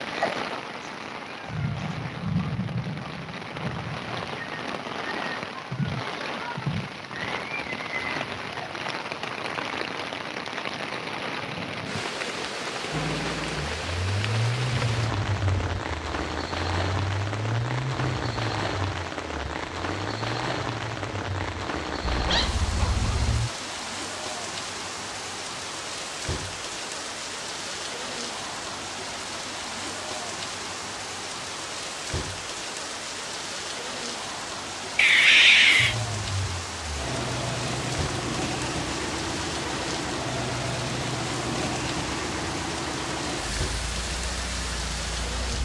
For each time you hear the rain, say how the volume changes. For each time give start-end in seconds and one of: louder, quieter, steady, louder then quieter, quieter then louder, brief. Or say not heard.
0.0-45.5 steady.